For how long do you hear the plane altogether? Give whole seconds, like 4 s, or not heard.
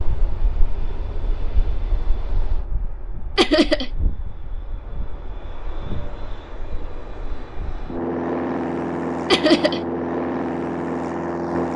12 s.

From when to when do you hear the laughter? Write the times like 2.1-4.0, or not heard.
3.4-3.9, 9.3-9.8.